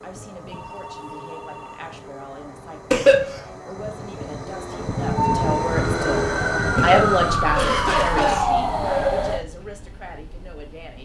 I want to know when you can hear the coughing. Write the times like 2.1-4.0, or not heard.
2.9-3.4, 6.8-8.5.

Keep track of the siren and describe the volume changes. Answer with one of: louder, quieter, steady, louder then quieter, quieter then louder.
louder.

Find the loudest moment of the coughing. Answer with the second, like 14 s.
3 s.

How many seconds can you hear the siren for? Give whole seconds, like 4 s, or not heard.
4 s.